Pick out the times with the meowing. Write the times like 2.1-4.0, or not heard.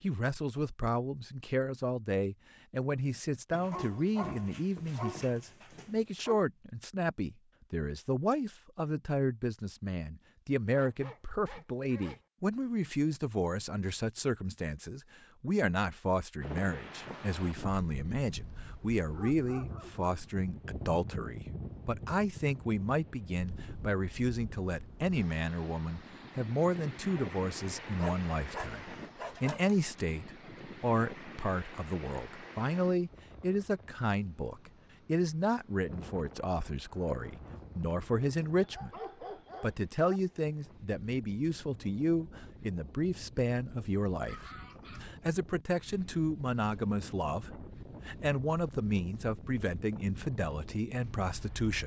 not heard.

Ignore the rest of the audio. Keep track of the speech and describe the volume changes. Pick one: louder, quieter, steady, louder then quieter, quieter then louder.
steady.